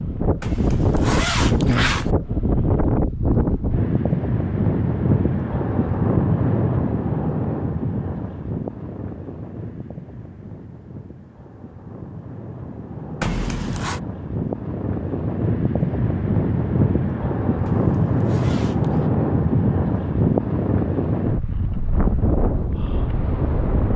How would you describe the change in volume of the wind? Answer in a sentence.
The volume of the wind goes down, then up.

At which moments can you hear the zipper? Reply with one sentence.
You can hear the zipper from 0.4 to 2.1 s, from 13.2 to 14.0 s and from 17.6 to 19.1 s.